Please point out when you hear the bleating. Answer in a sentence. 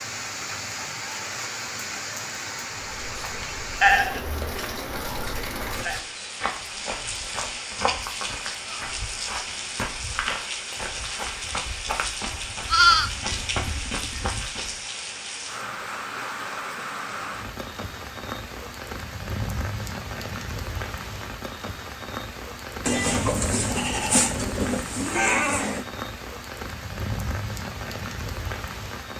You can hear the bleating from 3.8 to 6.0 s, from 12.7 to 14.3 s and from 22.9 to 25.9 s.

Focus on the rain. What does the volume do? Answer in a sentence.
The volume of the rain stays about the same.